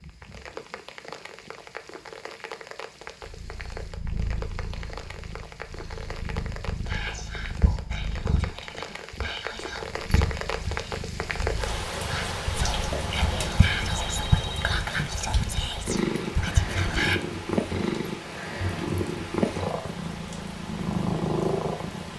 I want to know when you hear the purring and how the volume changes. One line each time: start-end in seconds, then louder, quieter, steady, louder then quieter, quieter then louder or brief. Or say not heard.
3.2-22.1 louder.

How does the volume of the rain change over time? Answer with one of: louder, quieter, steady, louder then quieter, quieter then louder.
louder then quieter.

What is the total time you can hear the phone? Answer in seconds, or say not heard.
2 s.